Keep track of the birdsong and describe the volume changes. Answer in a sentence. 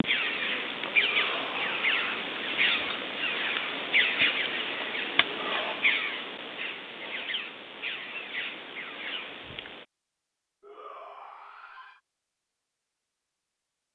The loudness of the birdsong goes down.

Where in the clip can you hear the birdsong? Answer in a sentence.
The birdsong can be heard from 0.0 to 9.8 s.